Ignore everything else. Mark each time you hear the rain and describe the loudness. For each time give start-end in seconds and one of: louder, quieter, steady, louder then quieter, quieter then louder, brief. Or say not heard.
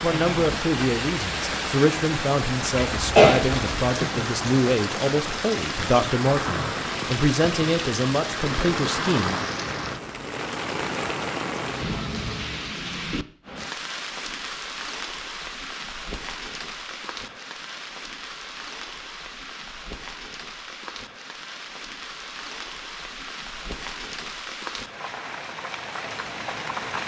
0.0-27.0 quieter.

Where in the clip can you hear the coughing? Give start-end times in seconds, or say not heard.
2.9-3.9.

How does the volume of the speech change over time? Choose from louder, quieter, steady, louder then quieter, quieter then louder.
steady.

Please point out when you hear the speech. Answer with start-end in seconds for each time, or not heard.
0.0-9.4.